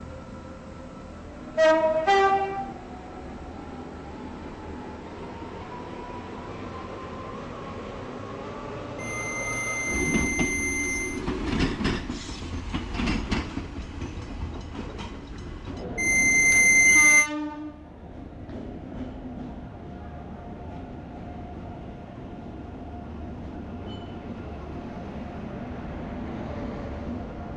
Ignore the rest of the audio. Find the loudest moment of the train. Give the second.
2 s.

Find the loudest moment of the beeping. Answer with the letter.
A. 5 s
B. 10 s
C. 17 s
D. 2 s
C.